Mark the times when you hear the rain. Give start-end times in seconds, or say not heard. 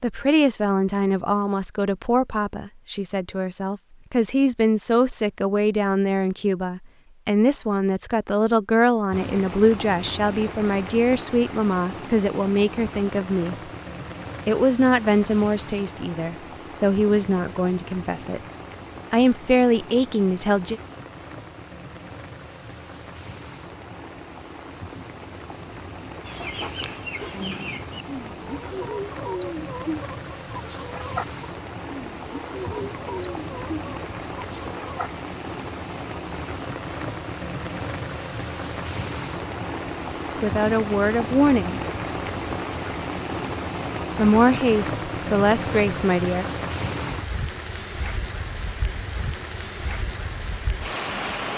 9.1-51.5.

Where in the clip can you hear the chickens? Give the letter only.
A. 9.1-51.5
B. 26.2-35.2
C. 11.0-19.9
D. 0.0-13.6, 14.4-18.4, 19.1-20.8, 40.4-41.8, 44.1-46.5
B.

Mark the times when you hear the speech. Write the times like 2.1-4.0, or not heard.
0.0-13.6, 14.4-18.4, 19.1-20.8, 40.4-41.8, 44.1-46.5.